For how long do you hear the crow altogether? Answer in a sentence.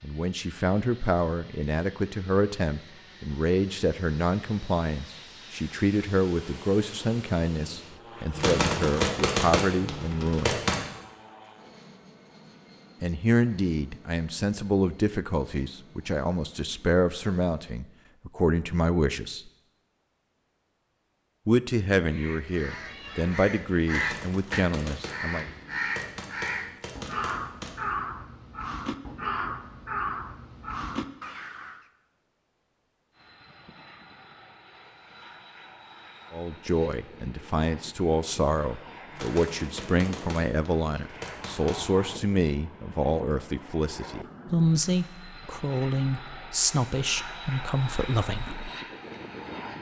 The crow can be heard for 10 seconds in total.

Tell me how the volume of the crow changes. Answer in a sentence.
The volume of the crow stays about the same.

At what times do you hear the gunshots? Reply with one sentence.
You can hear the gunshots from 8.3 to 10.8 s, from 23.9 to 27.8 s and from 39.1 to 42.0 s.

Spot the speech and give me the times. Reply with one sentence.
You can hear the speech from 0.0 to 10.6 s, from 13.0 to 19.5 s, from 21.4 to 25.4 s and from 36.3 to 48.7 s.